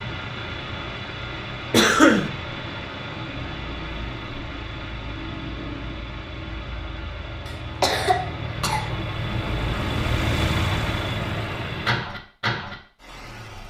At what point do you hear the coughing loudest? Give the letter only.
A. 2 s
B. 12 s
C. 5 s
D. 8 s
A.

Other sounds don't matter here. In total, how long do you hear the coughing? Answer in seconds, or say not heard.
2 s.